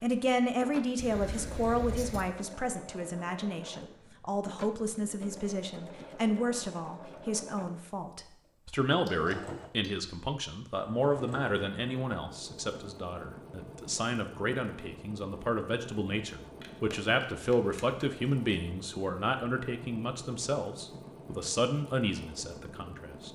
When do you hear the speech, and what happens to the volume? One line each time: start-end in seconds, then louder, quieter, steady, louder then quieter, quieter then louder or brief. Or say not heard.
0.0-23.2 steady.